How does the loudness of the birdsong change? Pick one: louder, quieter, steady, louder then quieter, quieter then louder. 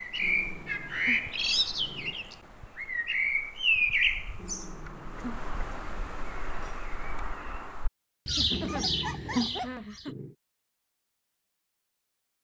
quieter then louder.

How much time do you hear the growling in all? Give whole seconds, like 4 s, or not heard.
5 s.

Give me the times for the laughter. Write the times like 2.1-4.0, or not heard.
8.3-10.2.